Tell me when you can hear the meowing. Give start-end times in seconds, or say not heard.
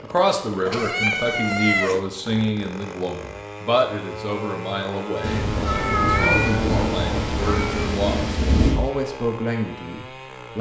0.7-2.0, 5.7-7.8.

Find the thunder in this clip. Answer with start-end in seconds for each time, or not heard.
5.2-8.8.